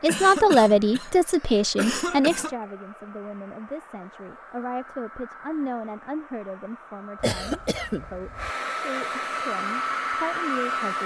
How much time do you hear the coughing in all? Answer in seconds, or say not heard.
4 s.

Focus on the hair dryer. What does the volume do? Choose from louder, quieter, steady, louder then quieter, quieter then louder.
louder.